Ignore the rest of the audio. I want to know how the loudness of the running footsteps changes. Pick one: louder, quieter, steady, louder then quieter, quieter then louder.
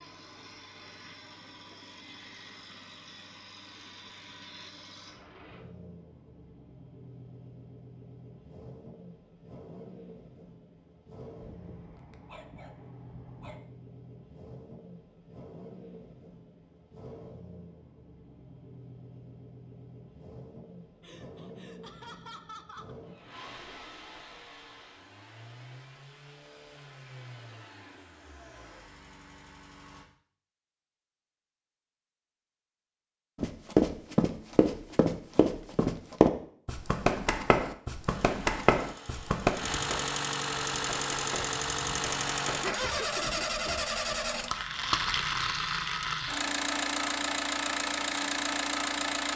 quieter.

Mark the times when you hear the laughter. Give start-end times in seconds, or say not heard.
21.0-22.9, 42.9-43.6.